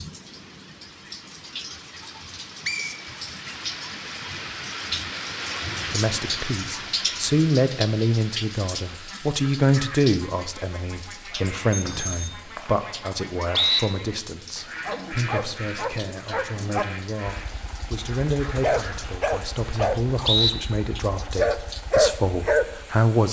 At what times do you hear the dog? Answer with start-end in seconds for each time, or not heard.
14.8-22.9.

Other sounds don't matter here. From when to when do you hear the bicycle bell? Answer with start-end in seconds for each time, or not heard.
11.7-12.4.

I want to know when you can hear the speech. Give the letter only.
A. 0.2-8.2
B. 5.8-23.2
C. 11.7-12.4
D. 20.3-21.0
B.